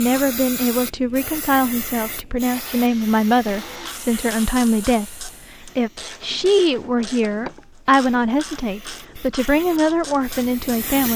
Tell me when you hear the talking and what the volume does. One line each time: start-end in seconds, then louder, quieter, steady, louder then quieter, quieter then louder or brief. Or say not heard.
0.0-11.1 steady.